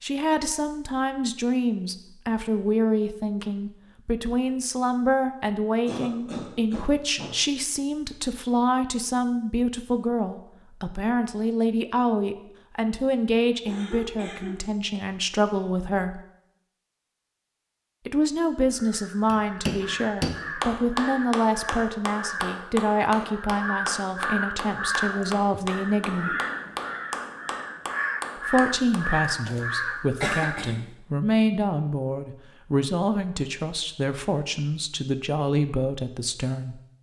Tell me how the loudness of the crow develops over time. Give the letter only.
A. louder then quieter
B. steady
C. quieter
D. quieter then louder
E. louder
E.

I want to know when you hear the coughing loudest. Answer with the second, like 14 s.
30 s.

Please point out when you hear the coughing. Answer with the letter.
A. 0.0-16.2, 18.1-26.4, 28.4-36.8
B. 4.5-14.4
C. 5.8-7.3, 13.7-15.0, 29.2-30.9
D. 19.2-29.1
C.